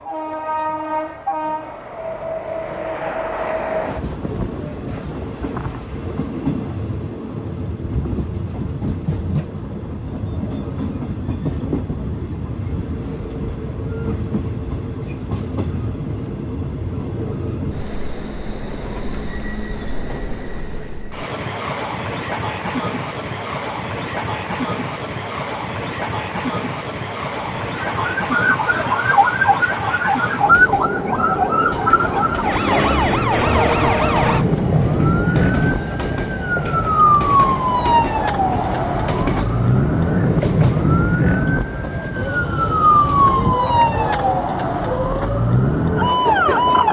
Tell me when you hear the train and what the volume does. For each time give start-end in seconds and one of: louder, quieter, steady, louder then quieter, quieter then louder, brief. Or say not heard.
0.0-46.8 steady.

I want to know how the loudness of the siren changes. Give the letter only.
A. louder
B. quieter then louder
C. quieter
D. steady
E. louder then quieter
D.